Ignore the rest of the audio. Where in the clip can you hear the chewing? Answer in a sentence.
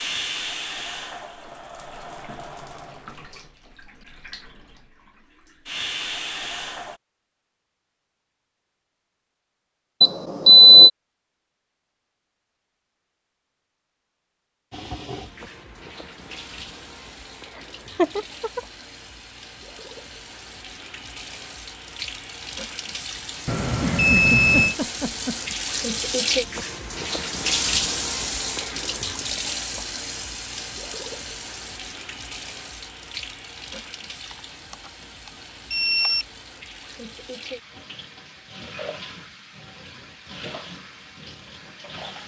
The chewing can't be heard in this clip.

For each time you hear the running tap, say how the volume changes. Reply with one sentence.
You can hear the running tap from 0.0 to 7.0 s, getting quieter then louder; and from 14.7 to 42.2 s, getting louder then quieter.